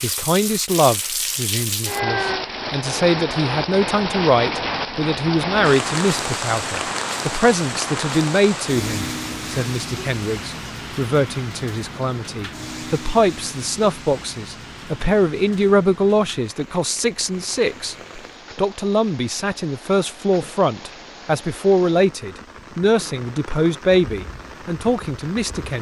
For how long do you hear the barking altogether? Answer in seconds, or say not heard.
not heard.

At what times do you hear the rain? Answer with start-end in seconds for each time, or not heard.
0.0-25.7.